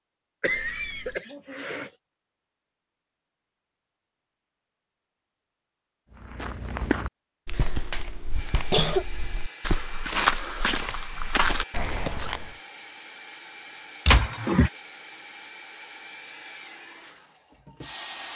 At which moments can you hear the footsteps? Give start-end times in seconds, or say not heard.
6.1-12.6.